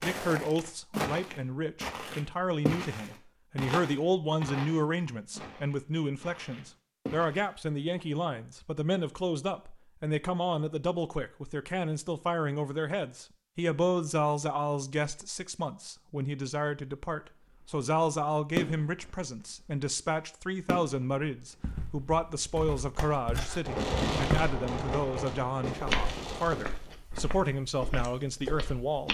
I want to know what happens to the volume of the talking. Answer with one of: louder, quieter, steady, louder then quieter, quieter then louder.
steady.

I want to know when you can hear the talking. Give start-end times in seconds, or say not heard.
0.0-29.0.